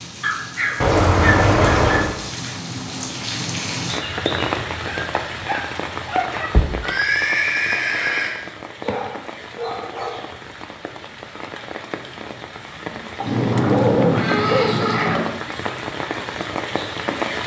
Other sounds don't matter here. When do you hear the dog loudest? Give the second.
14 s.